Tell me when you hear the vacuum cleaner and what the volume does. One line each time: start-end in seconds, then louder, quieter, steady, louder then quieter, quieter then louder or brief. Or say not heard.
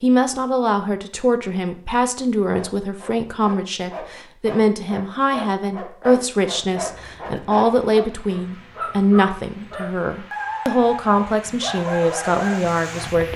not heard.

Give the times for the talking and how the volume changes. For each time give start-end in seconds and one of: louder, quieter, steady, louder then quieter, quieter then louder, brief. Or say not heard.
0.0-13.3 steady.